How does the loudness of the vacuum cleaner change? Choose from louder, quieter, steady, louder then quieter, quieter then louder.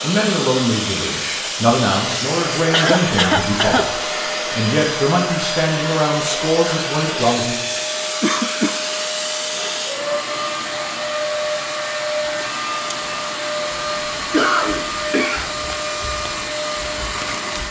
steady.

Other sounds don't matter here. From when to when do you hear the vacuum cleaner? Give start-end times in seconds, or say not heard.
0.0-17.6.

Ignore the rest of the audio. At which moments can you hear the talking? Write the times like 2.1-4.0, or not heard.
0.0-7.6.